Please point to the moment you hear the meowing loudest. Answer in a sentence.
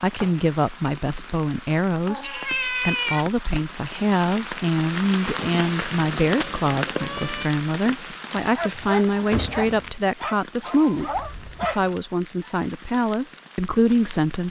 The loudest moment of the meowing is at 3 seconds.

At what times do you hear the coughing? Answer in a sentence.
You can't hear the coughing here.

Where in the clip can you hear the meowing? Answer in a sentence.
The meowing can be heard from 2.0 to 3.2 s, from 5.3 to 7.5 s and from 10.6 to 11.3 s.